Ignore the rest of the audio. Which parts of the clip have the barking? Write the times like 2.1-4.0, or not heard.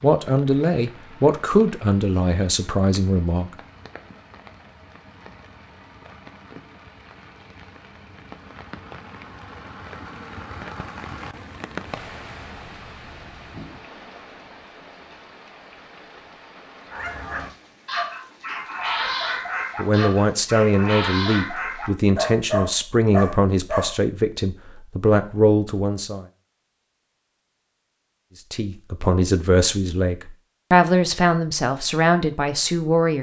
16.9-23.9.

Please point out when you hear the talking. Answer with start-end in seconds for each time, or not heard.
0.0-3.5, 19.8-26.2, 28.5-33.1.